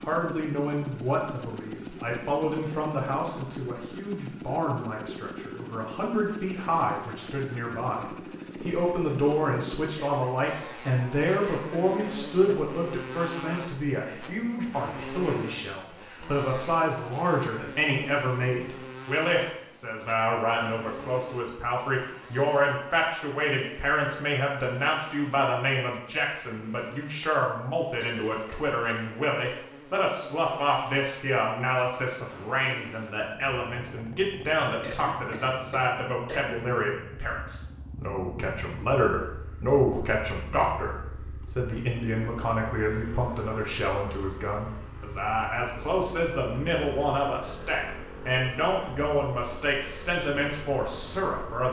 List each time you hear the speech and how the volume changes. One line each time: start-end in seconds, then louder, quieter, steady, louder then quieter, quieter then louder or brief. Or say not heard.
0.0-51.6 steady.